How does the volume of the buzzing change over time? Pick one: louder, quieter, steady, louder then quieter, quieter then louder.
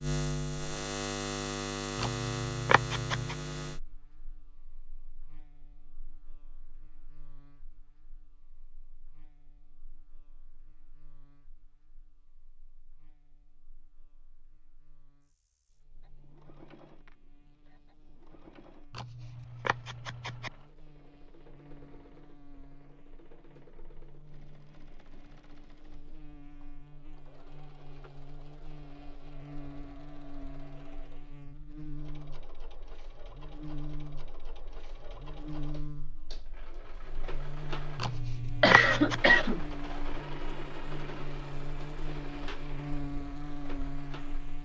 quieter then louder.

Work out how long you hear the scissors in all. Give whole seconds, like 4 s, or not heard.
4 s.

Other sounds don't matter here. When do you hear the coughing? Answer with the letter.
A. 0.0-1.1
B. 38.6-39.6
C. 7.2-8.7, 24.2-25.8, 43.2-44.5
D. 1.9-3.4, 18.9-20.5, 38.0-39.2
B.